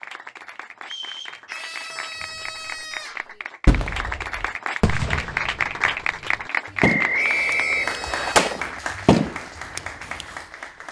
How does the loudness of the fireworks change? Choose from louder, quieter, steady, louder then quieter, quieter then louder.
quieter then louder.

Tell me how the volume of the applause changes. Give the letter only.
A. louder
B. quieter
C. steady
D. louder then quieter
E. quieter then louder
D.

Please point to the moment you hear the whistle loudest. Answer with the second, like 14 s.
7 s.